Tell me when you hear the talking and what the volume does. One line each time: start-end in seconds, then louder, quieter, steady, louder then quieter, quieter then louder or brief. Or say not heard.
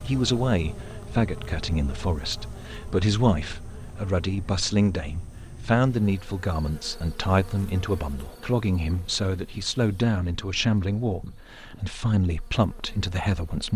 0.0-13.7 steady.